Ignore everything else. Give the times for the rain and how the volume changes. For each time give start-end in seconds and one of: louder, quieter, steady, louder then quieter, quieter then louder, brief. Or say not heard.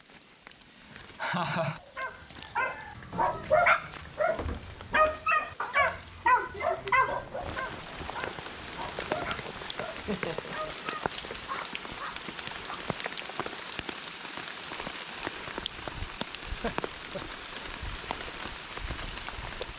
0.0-19.7 louder.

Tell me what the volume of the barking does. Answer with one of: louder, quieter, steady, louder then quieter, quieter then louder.
quieter.